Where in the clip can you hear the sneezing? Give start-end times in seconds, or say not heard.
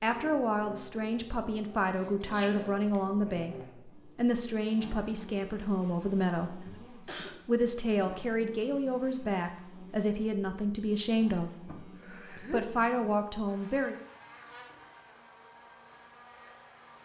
2.2-3.0, 6.6-7.3, 11.7-12.7.